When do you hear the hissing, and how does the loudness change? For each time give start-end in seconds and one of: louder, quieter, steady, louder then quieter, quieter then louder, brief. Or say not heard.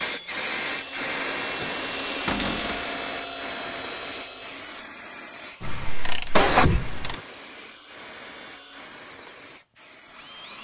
0.0-10.5 quieter.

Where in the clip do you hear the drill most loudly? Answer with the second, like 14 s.
2 s.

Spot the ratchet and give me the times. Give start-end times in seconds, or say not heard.
5.6-7.2.